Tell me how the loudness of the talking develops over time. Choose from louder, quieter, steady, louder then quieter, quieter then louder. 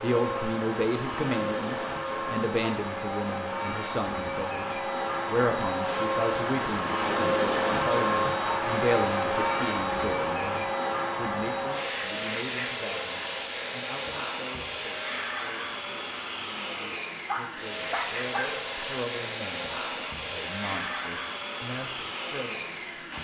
quieter then louder.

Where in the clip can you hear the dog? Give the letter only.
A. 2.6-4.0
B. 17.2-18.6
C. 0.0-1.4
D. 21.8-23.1
B.